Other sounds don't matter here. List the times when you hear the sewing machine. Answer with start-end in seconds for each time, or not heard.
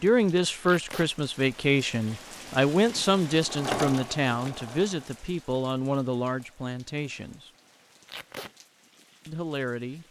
3.2-5.2.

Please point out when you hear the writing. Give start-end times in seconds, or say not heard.
not heard.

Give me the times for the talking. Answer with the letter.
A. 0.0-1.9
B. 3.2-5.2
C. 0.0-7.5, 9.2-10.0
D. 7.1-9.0
C.